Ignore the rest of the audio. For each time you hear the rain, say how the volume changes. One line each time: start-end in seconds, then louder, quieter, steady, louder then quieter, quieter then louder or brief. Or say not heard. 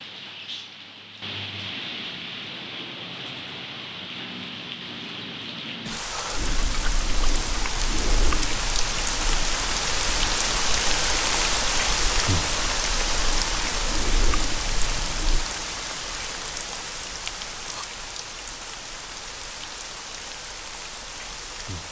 0.0-21.8 louder then quieter.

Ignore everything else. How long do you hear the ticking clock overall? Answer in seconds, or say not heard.
not heard.